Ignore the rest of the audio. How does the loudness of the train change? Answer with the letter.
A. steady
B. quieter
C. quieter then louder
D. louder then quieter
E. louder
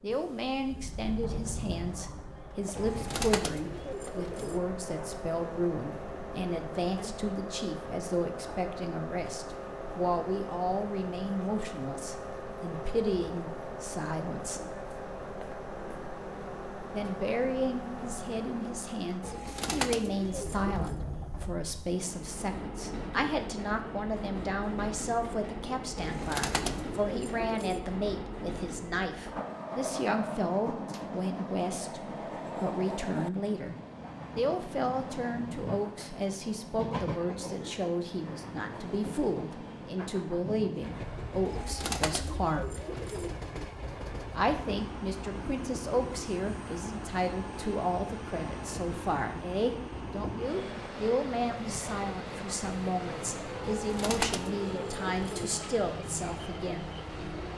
A.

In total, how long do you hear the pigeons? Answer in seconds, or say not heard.
9 s.